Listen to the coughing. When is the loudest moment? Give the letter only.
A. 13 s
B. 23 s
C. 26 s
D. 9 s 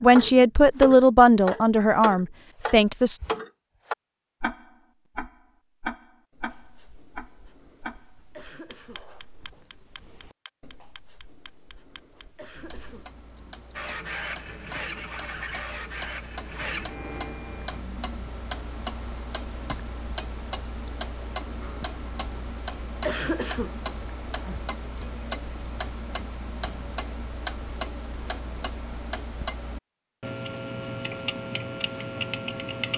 B.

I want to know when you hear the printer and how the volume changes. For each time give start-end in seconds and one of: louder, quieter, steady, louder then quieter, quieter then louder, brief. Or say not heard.
13.7-17.8 steady.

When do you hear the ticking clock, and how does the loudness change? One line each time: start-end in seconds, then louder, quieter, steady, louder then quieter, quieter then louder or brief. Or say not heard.
0.0-32.9 quieter then louder.